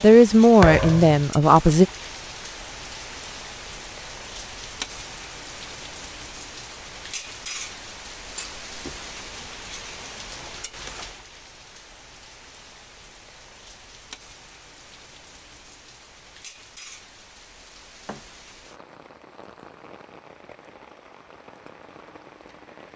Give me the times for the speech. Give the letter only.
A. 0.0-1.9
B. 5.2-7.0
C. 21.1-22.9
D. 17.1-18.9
A.